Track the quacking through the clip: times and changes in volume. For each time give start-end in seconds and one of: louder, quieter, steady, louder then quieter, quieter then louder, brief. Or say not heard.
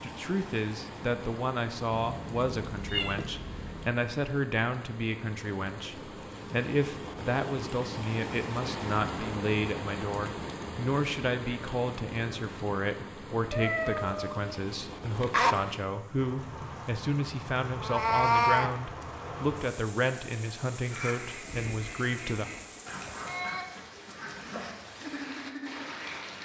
20.8-26.3 steady.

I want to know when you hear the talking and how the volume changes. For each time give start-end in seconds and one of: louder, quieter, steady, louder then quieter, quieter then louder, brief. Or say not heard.
0.0-22.5 steady.